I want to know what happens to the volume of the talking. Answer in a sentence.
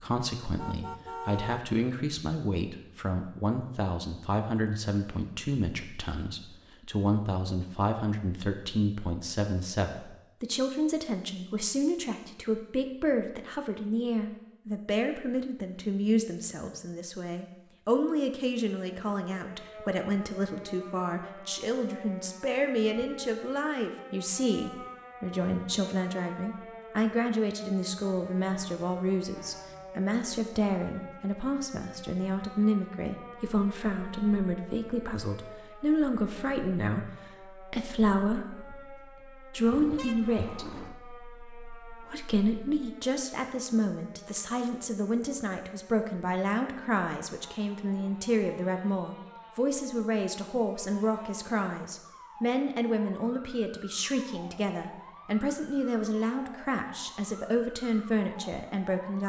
The volume of the talking stays about the same.